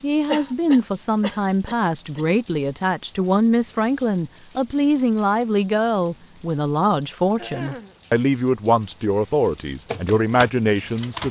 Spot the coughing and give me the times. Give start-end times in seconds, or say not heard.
0.2-2.2, 7.3-8.0.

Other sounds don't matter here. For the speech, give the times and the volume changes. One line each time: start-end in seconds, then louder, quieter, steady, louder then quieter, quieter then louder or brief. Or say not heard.
0.0-11.2 steady.